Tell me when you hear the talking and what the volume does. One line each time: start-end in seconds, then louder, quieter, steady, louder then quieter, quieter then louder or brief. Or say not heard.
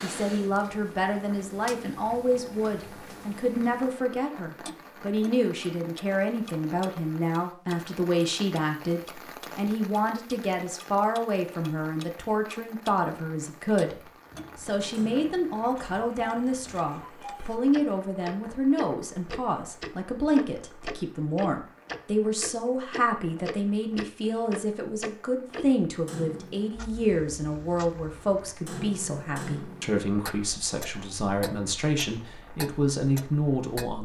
0.0-33.9 steady.